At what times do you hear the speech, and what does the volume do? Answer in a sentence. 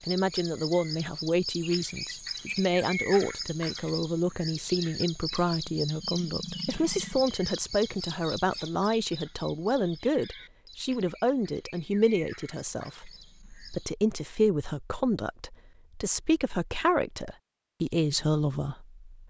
The speech can be heard from 0.1 to 19.0 s, at a steady volume.